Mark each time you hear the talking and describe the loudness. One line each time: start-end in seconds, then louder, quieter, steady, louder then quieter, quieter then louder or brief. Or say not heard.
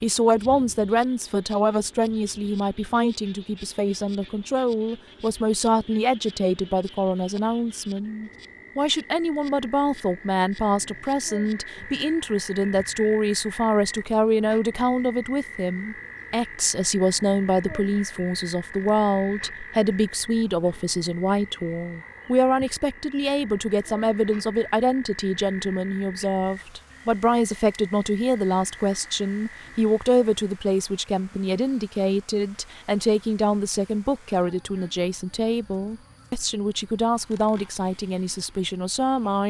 0.0-39.4 steady.